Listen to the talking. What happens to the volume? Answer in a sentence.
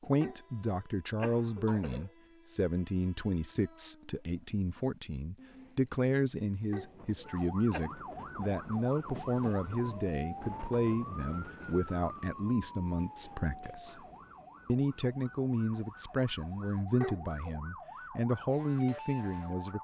The loudness of the talking stays about the same.